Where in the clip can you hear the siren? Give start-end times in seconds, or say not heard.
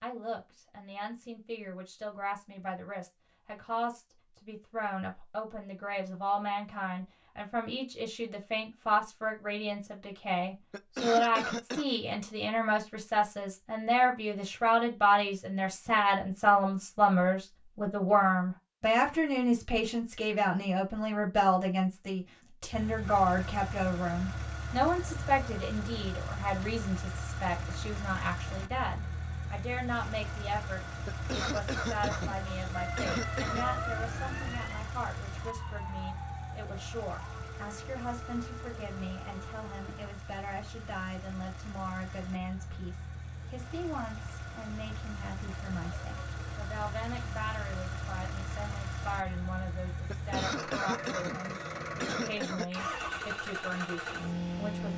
32.7-40.1.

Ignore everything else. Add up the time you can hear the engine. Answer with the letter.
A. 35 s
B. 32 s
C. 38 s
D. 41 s
B.